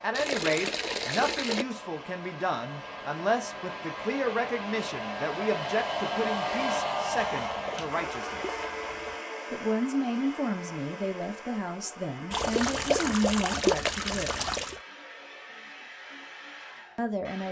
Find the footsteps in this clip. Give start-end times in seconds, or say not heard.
not heard.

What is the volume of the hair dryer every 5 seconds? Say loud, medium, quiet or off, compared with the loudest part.
medium, loud, medium, quiet.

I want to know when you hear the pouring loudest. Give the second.
14 s.